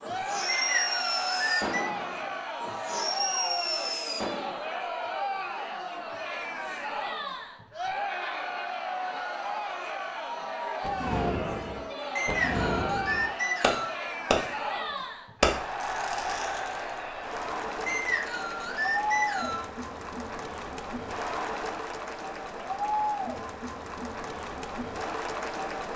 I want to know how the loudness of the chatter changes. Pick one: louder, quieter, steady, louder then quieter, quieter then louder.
steady.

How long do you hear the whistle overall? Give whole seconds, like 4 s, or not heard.
5 s.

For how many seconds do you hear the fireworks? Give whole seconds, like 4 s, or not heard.
10 s.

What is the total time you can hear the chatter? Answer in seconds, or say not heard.
26 s.